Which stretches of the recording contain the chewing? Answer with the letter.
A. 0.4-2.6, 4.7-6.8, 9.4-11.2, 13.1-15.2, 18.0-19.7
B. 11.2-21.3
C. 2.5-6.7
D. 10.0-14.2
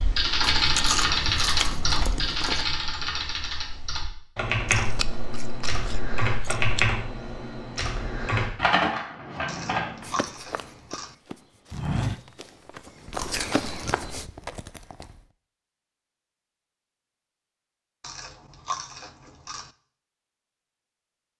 A.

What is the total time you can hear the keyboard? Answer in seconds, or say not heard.
10 s.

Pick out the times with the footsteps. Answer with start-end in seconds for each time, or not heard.
10.0-14.2.